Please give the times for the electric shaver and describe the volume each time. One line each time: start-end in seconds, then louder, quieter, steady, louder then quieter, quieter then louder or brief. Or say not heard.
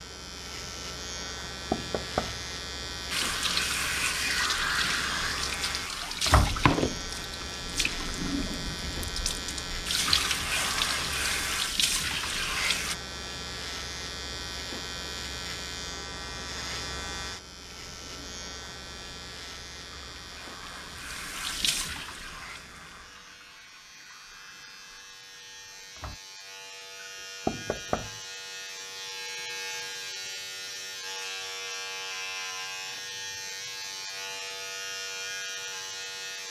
0.0-36.4 quieter then louder.